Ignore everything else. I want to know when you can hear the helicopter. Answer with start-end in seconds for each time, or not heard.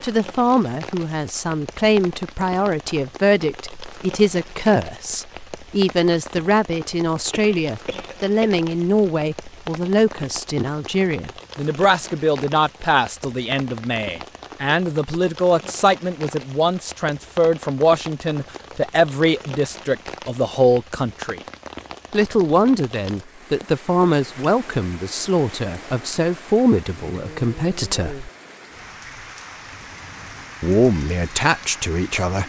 not heard.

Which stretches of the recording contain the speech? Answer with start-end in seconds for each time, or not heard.
0.0-21.4, 22.1-28.3, 30.6-32.4.